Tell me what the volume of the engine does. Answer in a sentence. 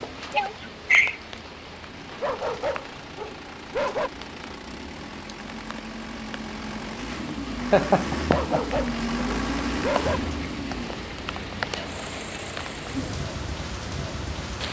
The loudness of the engine goes up, then down.